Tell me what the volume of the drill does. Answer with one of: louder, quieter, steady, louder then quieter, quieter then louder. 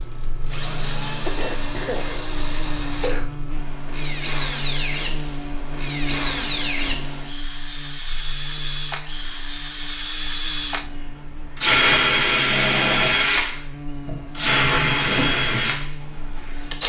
louder.